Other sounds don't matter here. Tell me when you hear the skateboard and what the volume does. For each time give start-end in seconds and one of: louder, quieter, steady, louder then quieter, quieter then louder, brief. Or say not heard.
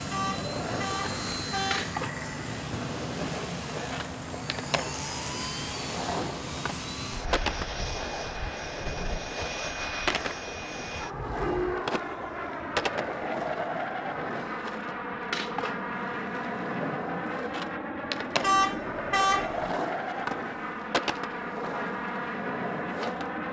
0.0-23.4 steady.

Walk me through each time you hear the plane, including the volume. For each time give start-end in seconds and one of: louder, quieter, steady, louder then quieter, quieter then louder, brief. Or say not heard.
0.0-23.4 steady.